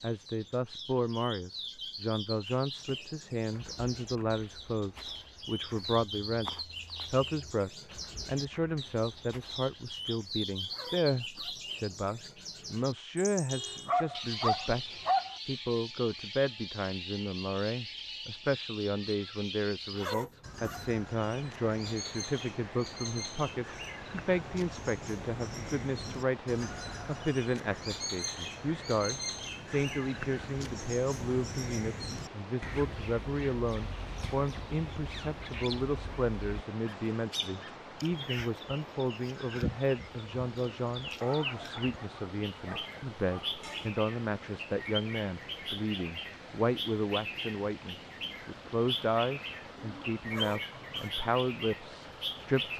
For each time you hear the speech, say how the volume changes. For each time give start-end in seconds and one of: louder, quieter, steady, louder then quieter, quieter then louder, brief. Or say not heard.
0.0-52.7 steady.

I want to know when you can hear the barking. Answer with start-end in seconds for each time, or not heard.
13.4-15.3, 41.2-44.0.